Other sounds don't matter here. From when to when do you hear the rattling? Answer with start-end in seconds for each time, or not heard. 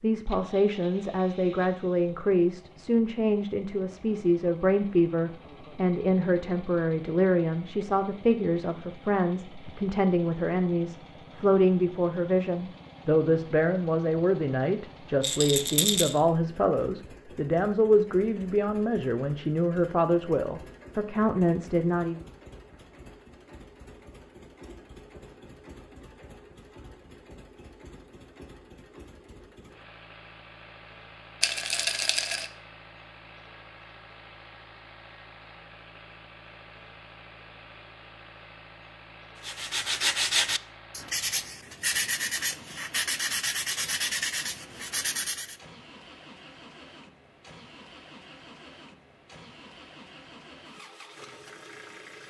15.2-16.2, 31.4-32.5.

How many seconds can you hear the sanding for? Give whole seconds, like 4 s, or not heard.
6 s.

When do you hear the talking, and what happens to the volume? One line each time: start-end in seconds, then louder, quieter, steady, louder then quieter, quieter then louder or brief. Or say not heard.
0.0-22.2 steady.